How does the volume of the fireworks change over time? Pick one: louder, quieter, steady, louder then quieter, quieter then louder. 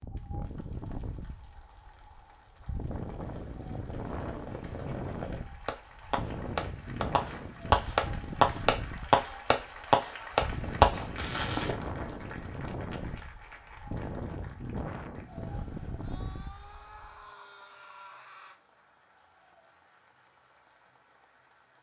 louder.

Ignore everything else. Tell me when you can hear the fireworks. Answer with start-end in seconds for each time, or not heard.
3.0-11.8.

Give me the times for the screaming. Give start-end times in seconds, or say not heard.
16.0-18.6.